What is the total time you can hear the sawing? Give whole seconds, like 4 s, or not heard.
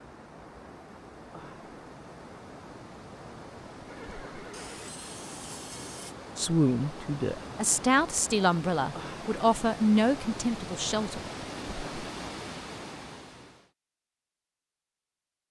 2 s.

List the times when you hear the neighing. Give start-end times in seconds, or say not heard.
3.9-5.0.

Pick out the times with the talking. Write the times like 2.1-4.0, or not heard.
6.3-11.2.